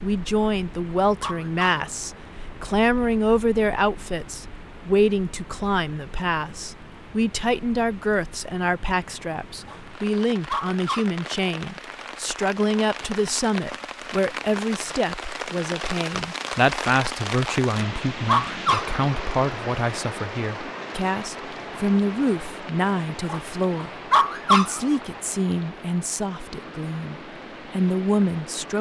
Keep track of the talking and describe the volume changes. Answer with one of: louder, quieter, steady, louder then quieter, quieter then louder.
steady.